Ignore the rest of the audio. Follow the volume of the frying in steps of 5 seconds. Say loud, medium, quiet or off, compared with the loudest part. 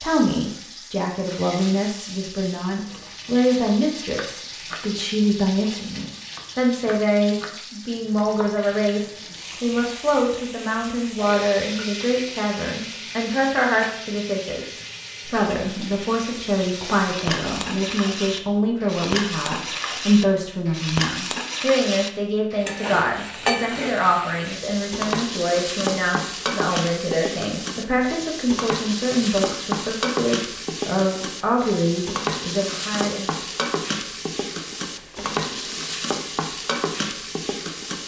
medium, medium, medium, loud, loud, loud, loud, loud.